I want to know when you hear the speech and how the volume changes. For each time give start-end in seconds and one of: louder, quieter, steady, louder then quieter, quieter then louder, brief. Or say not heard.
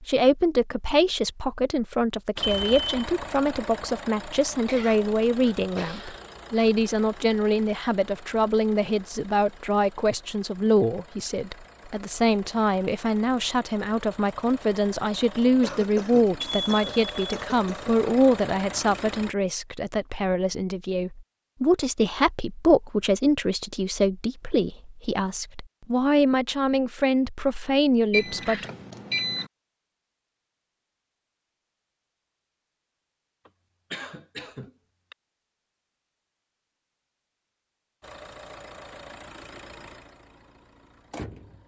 0.0-28.6 steady.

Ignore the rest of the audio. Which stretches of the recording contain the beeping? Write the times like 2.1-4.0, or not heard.
2.4-2.9, 16.4-17.4, 28.1-29.4.